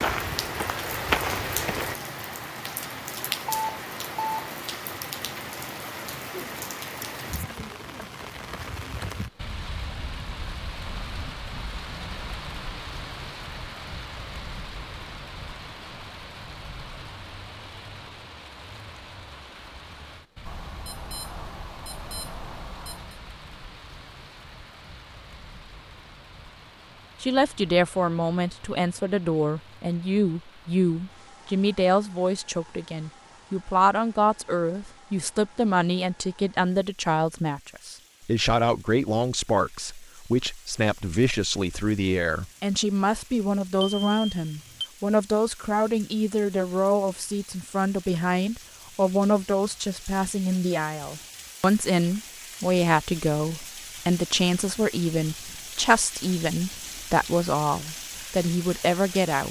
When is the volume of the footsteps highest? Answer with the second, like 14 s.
1 s.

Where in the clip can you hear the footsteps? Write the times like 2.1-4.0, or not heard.
0.0-1.9.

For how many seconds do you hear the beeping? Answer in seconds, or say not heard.
5 s.